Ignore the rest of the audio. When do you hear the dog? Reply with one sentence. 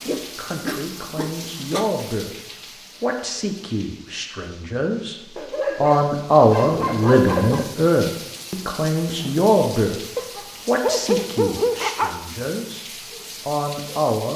You can hear the dog from 0.1 to 1.9 s, from 5.3 to 7.7 s and from 10.2 to 12.1 s.